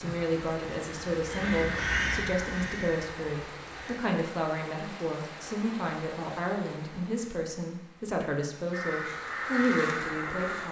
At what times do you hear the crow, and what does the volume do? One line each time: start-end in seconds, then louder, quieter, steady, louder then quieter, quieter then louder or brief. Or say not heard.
0.0-4.0 louder then quieter
8.7-10.6 brief.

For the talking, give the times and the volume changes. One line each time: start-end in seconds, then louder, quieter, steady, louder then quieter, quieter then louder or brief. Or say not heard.
0.0-10.6 steady.